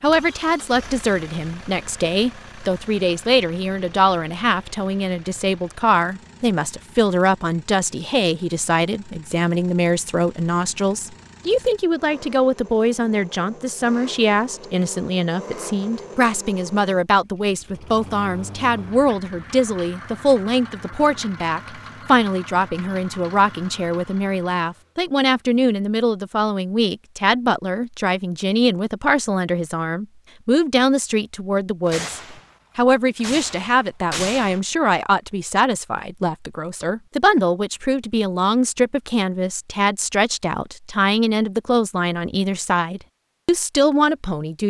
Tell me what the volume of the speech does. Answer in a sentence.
The loudness of the speech stays about the same.